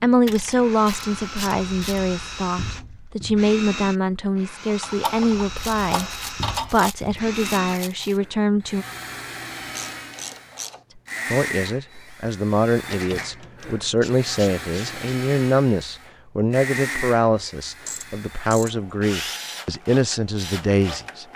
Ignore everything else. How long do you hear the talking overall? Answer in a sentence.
You can hear the talking for 18 seconds altogether.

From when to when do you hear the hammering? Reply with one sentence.
You can't hear the hammering here.